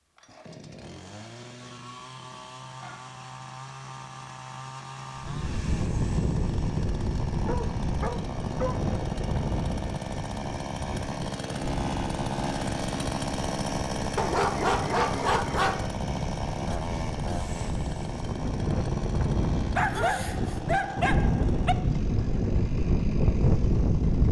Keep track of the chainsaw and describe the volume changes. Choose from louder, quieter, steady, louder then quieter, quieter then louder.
louder then quieter.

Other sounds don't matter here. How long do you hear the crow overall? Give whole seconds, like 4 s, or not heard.
not heard.